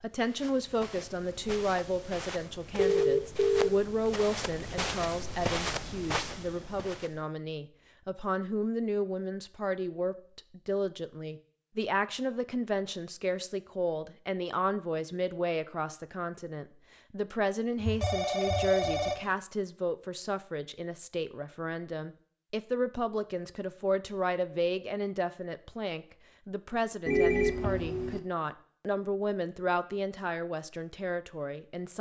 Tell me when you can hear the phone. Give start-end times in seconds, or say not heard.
2.8-3.7, 17.8-19.4, 27.1-28.2.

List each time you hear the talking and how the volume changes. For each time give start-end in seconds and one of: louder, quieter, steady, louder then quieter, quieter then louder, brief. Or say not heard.
0.0-31.9 steady.